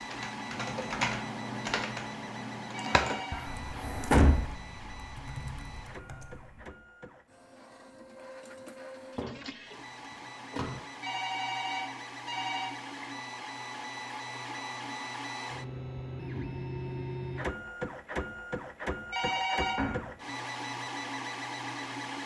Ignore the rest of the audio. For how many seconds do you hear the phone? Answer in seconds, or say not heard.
3 s.